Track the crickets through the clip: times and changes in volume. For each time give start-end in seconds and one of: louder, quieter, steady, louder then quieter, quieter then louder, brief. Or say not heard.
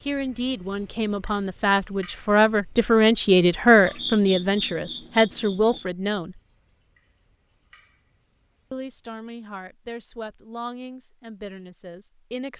0.0-9.3 quieter.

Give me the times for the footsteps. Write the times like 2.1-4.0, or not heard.
not heard.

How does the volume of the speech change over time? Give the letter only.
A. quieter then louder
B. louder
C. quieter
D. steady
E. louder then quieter
E.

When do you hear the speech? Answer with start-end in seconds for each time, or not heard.
0.0-6.4, 8.7-12.5.